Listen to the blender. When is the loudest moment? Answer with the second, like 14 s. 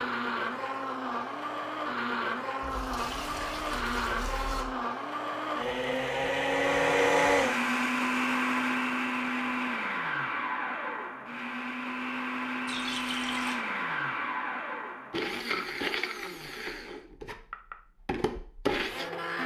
7 s.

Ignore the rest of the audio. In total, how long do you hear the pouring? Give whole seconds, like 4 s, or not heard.
3 s.